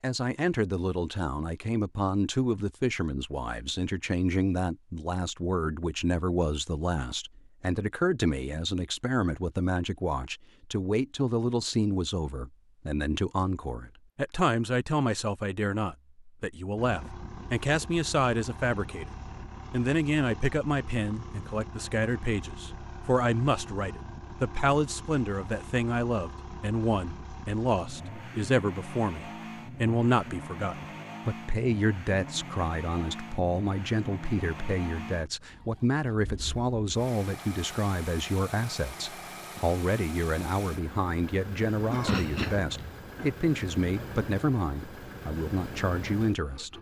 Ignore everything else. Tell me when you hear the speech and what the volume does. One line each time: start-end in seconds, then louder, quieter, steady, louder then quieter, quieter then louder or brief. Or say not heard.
0.0-19.1 steady
19.7-46.7 steady.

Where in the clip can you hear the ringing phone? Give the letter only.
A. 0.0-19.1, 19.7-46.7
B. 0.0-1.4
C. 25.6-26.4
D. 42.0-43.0
D.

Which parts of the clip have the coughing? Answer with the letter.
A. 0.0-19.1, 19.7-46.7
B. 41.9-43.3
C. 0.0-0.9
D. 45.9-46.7
B.